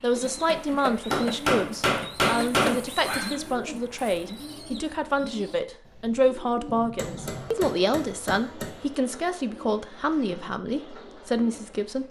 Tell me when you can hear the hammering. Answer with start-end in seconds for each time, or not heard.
1.1-2.8, 7.0-8.8.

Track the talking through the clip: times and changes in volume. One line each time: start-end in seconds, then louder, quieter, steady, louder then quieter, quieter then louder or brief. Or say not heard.
0.0-12.0 steady.